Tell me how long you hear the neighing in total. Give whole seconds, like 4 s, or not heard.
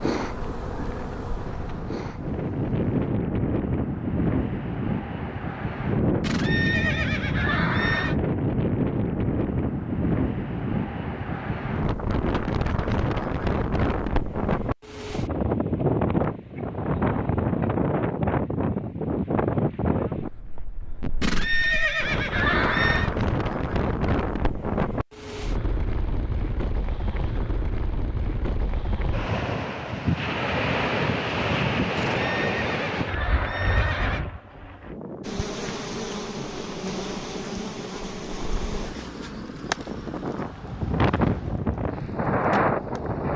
6 s.